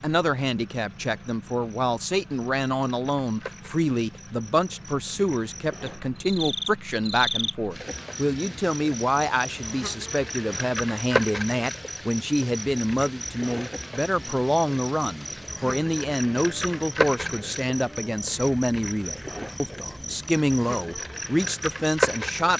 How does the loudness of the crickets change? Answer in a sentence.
The volume of the crickets goes up.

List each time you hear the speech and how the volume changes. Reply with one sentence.
You can hear the speech from 0.0 to 22.5 s, at a steady volume.